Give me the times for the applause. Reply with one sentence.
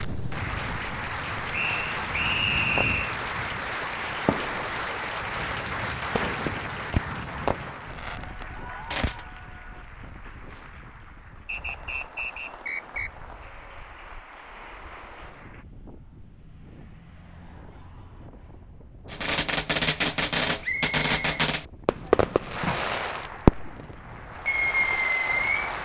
The applause can be heard from 0.0 to 15.7 s and from 22.6 to 25.8 s.